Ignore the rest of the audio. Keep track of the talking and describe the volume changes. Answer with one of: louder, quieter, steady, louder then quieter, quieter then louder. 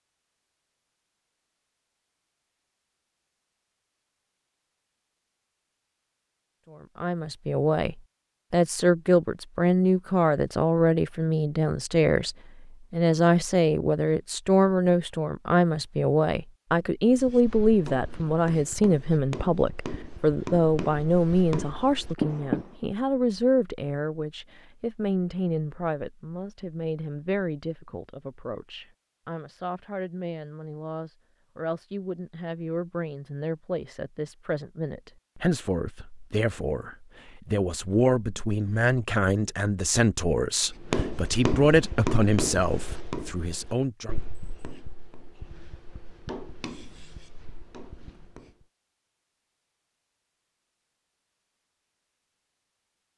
quieter then louder.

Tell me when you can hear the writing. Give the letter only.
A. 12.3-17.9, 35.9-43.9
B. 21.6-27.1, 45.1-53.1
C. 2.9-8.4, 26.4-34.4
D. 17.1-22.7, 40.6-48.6
D.